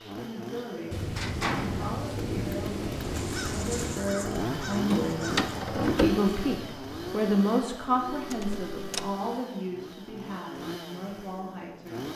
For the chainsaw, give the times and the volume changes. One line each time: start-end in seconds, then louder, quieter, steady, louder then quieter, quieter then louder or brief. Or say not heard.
0.0-12.1 louder then quieter.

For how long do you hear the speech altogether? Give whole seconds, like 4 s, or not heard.
12 s.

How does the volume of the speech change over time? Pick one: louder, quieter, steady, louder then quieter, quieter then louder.
louder then quieter.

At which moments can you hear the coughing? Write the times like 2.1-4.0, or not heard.
not heard.